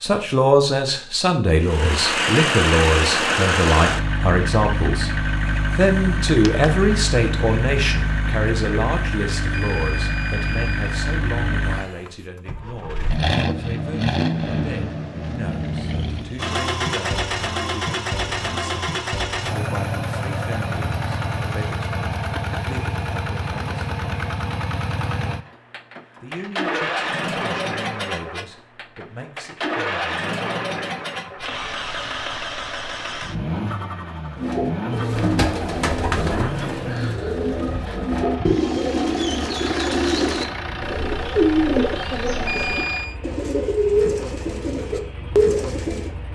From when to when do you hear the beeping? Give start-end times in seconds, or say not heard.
9.5-10.9, 42.5-43.2.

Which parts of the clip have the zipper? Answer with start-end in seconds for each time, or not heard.
not heard.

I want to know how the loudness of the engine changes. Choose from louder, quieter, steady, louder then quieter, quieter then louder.
quieter.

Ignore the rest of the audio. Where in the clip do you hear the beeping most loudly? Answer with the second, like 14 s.
43 s.